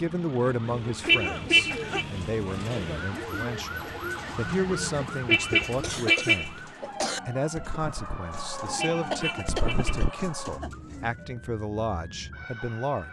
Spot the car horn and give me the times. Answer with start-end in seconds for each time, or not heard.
1.1-2.0, 4.5-6.5, 8.8-10.1.